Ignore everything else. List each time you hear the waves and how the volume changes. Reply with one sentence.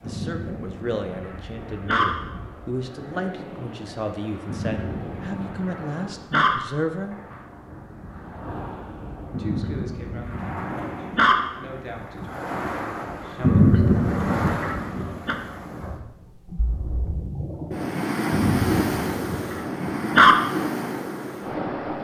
The waves can be heard from 0.0 to 22.0 s, getting louder.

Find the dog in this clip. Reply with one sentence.
The dog can be heard from 0.1 to 2.0 s, from 4.5 to 6.5 s, from 9.3 to 11.3 s, from 13.4 to 15.3 s and from 18.3 to 20.4 s.